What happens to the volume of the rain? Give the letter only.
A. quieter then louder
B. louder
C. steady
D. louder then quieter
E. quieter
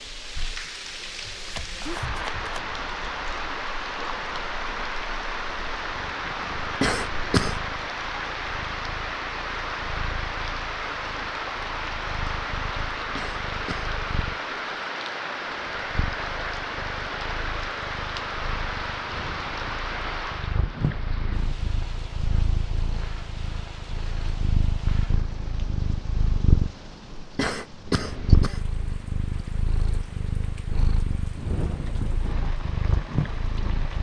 E.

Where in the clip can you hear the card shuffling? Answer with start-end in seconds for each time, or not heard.
1.4-2.6.